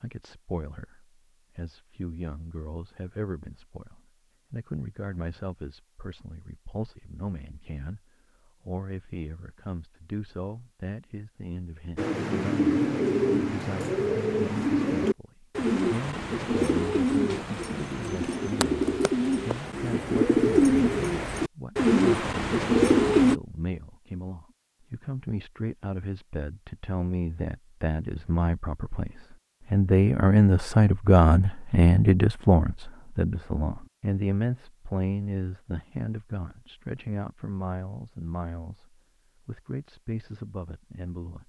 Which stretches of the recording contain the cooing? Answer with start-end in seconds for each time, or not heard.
11.9-23.4.